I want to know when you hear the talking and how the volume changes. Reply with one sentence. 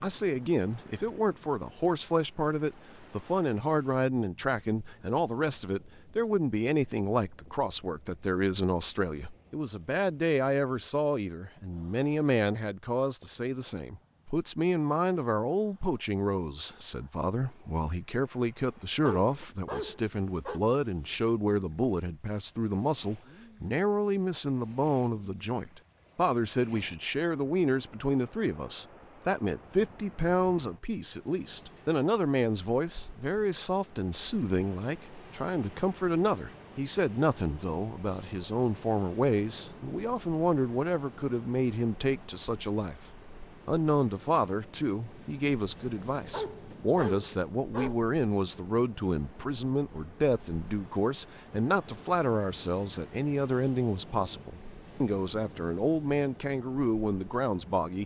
You can hear the talking from 0.0 to 58.0 s, at a steady volume.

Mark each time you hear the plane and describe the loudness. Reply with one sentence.
You can't hear the plane here.